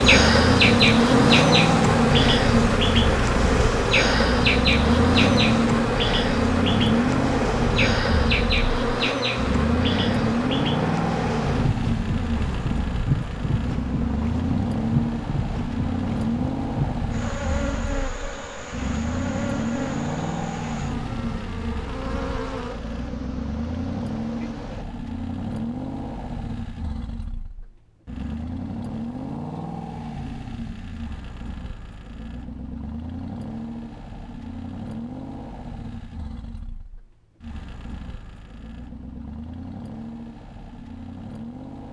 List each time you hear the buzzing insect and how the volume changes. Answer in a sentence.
You can hear the buzzing insect from 0.0 to 24.9 s, getting quieter.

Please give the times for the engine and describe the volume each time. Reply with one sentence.
The engine can be heard from 0.0 to 41.8 s, getting quieter.